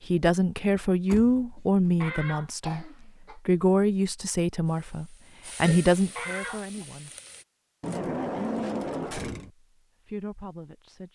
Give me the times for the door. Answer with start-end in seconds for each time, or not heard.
1.1-2.1, 7.8-9.5.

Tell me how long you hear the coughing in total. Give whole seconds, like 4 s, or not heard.
2 s.